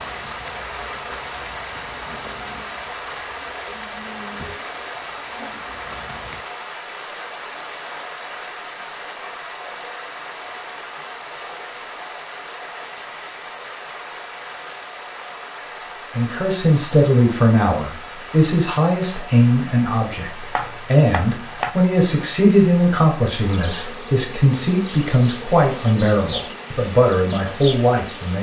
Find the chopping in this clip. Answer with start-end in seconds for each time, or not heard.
20.2-21.8.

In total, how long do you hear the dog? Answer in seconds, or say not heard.
not heard.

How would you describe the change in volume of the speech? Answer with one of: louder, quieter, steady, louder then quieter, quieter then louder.
steady.